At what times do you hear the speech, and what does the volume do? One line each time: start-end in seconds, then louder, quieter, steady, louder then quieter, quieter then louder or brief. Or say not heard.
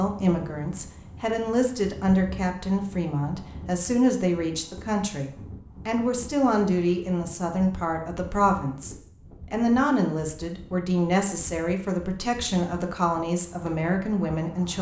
0.0-14.7 steady.